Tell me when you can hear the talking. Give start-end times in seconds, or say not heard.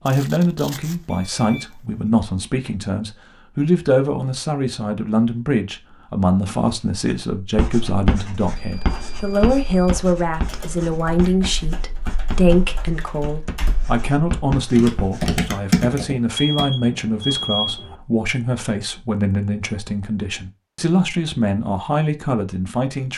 0.0-23.1.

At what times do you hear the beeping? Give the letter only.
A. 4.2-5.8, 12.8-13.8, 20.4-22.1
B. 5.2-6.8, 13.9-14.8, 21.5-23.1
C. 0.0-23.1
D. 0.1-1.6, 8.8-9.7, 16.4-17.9
D.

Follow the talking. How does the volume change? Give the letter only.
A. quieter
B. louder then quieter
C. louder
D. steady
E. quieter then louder
D.